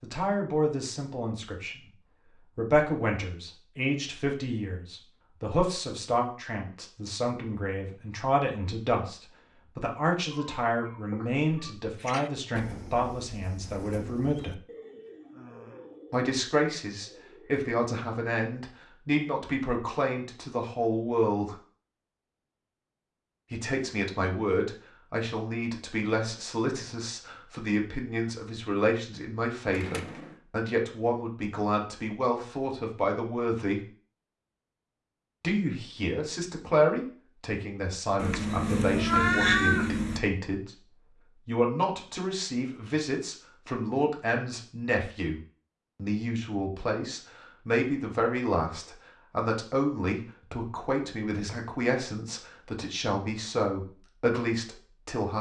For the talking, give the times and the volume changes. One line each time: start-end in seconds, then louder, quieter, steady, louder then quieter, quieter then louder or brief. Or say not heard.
0.0-14.6 steady
16.1-21.6 steady
23.5-33.8 steady
35.4-55.3 steady.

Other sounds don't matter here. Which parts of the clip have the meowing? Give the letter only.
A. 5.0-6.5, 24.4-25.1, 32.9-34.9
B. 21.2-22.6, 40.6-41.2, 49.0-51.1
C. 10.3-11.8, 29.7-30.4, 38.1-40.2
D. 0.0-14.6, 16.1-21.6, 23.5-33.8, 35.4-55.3
C.